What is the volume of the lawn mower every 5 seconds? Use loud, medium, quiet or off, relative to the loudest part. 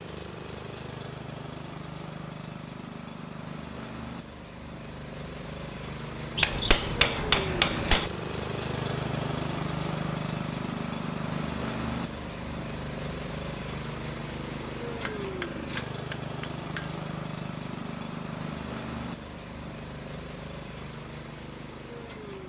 medium, loud, loud, loud, medium.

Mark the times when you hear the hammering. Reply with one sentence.
You can hear the hammering from 6.3 to 8.1 s and from 15.1 to 16.9 s.